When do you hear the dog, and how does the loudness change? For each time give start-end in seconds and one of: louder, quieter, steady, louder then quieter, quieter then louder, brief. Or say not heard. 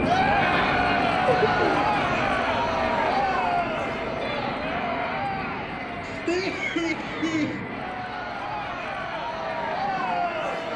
not heard.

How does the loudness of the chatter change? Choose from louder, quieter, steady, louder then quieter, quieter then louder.
quieter then louder.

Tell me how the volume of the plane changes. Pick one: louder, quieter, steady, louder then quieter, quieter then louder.
quieter.